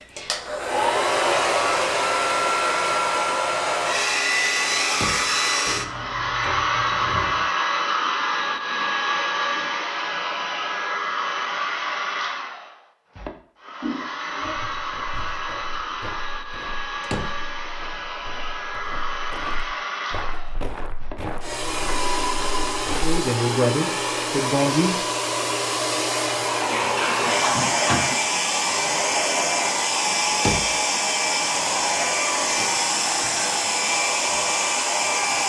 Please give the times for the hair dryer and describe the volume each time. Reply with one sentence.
You can hear the hair dryer from 0.0 to 35.4 s, getting quieter then louder.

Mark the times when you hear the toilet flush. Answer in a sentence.
The toilet flush can be heard from 5.7 to 7.5 s, from 13.8 to 15.4 s and from 26.5 to 28.4 s.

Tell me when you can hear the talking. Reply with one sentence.
The talking can be heard from 22.9 to 25.1 s.